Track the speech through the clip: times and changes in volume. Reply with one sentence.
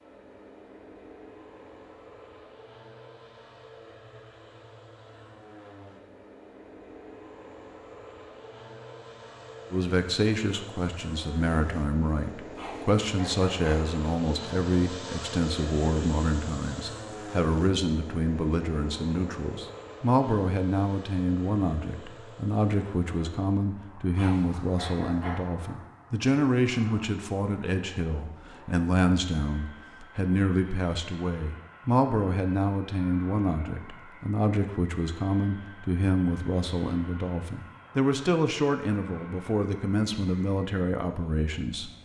You can hear the speech from 9.7 to 41.9 s, at a steady volume.